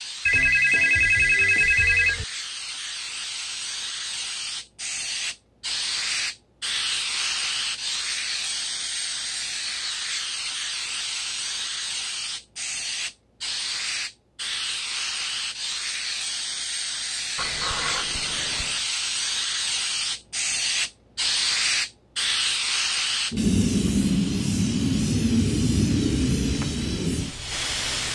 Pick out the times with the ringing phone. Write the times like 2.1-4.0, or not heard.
0.2-2.2, 17.4-18.8.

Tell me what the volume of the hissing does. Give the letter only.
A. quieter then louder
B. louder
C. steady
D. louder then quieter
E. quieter
B.